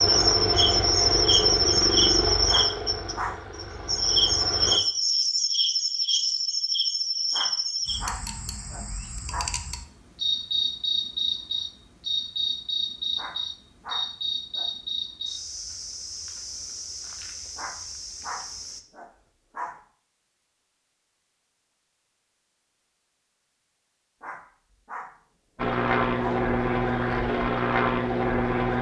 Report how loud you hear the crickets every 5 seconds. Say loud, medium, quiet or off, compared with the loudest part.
loud, medium, medium, quiet, off, off.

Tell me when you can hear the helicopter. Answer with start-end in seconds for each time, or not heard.
0.0-4.8, 25.6-28.7.